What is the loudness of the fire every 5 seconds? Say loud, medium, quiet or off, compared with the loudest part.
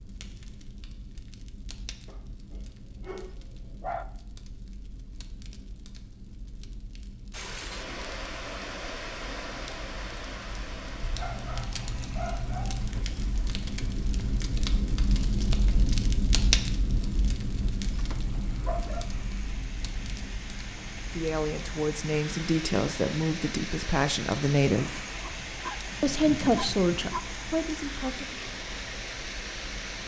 quiet, quiet, medium, loud, quiet, quiet.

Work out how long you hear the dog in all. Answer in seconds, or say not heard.
7 s.